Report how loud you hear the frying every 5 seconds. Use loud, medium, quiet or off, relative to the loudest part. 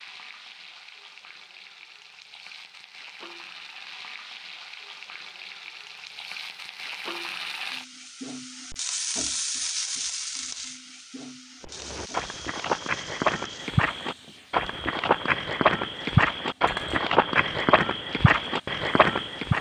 medium, loud, medium, medium.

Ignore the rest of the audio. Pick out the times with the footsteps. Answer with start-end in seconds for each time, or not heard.
11.6-19.5.